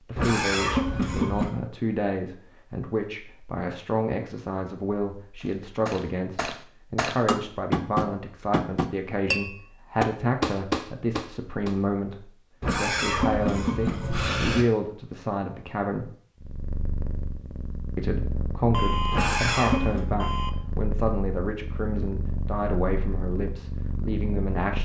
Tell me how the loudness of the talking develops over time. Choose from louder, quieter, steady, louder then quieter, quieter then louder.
steady.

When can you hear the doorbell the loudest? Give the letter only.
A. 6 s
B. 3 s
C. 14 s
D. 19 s
D.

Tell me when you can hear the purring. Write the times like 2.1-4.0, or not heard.
16.4-24.8.